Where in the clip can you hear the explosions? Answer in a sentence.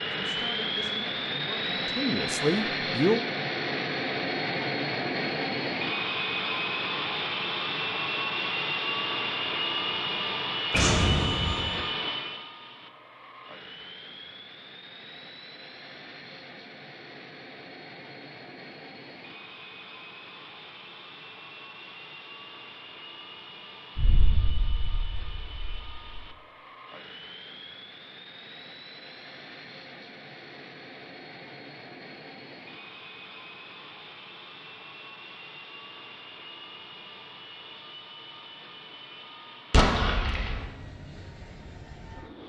You can hear the explosions from 10.7 to 11.8 s, from 23.9 to 26.2 s and from 39.7 to 40.6 s.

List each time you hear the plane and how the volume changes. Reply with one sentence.
You can hear the plane from 0.0 to 42.4 s, getting quieter.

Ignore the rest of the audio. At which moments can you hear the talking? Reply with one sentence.
You can hear the talking from 0.0 to 3.2 s.